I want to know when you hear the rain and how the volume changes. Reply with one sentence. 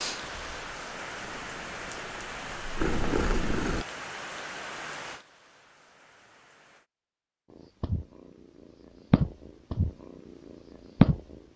You can hear the rain from 0.0 to 6.9 s, getting quieter.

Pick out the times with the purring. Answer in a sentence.
The purring can be heard from 0.0 to 3.9 s, from 7.5 to 9.9 s and from 11.0 to 11.5 s.